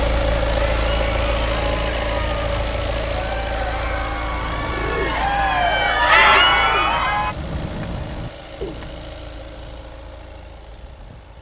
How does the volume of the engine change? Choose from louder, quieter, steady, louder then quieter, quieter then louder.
quieter.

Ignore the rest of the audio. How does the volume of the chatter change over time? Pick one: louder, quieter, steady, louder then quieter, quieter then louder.
louder.